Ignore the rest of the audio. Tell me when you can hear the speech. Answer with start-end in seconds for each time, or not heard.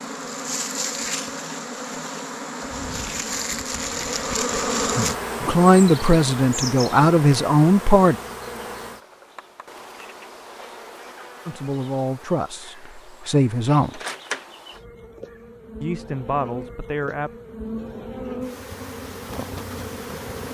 5.4-8.2, 11.4-14.0, 15.8-17.3.